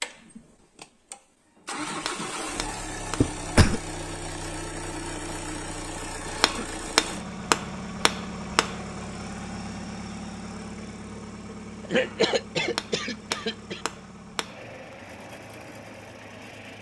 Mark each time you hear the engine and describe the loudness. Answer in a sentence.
You can hear the engine from 0.0 to 16.7 s, getting quieter.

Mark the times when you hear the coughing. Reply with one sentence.
The coughing can be heard from 3.2 to 3.8 s, from 6.2 to 6.7 s and from 11.9 to 13.8 s.